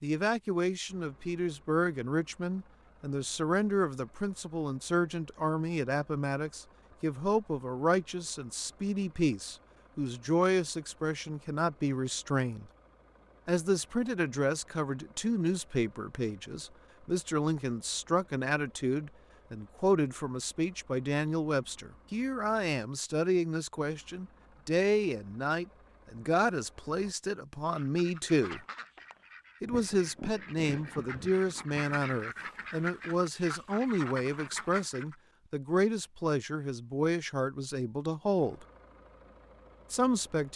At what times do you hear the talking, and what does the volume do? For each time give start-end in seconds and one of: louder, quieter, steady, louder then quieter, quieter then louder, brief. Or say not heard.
0.0-12.7 steady
13.4-28.6 steady
29.6-38.6 steady
39.9-40.5 brief.